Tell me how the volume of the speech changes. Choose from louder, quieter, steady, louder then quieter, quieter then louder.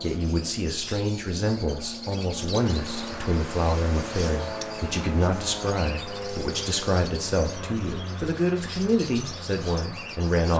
steady.